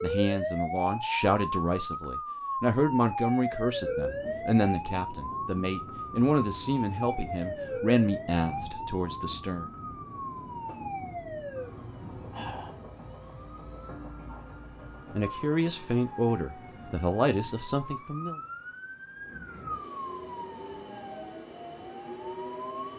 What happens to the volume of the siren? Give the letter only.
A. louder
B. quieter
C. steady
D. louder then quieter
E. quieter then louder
B.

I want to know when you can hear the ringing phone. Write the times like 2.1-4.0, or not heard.
not heard.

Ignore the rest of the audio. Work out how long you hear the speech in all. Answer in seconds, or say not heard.
13 s.